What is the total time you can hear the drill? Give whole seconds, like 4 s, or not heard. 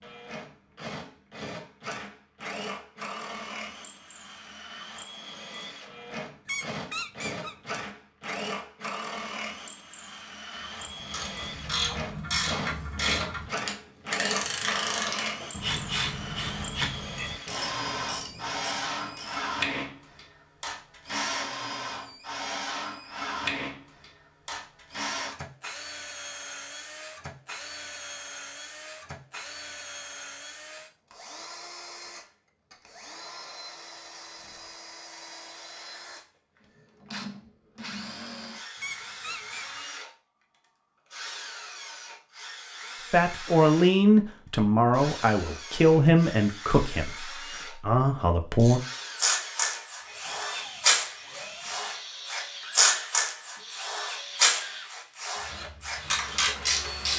54 s.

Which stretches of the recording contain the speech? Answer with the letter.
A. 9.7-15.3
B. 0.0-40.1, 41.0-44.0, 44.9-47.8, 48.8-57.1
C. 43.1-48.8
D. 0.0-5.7
C.